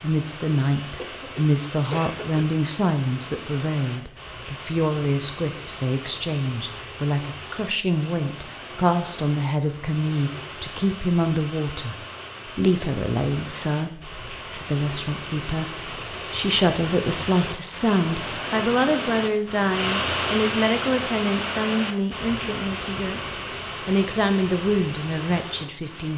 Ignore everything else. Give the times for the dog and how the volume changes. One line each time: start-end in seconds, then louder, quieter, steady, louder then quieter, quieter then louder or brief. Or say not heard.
not heard.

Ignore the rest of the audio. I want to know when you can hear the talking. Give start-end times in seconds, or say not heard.
0.0-23.2, 23.9-26.1.